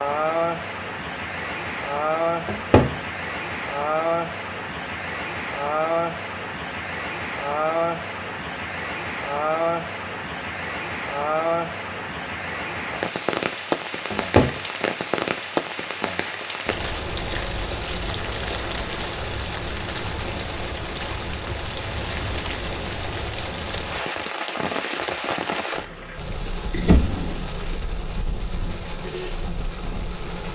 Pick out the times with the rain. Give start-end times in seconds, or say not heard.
0.0-30.4.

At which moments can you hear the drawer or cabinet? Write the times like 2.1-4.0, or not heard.
2.5-2.9, 14.1-14.5, 26.7-27.5.